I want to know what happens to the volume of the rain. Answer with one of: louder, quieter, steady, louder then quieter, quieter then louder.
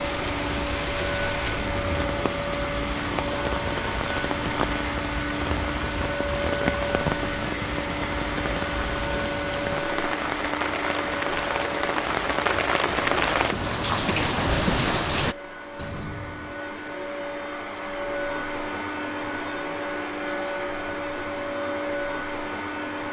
louder.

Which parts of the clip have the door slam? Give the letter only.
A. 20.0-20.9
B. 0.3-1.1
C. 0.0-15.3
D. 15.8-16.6
D.